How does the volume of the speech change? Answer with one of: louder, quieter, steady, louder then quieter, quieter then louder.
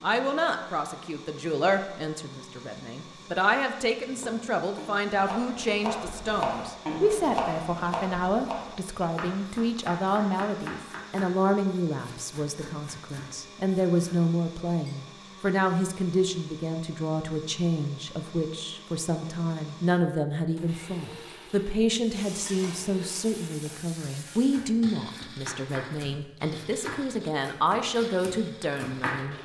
steady.